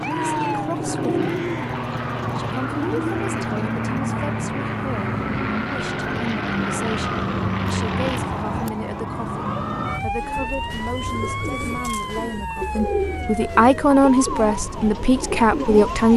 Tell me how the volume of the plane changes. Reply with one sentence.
The volume of the plane stays about the same.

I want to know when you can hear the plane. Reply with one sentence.
The plane can be heard from 0.0 to 8.6 s.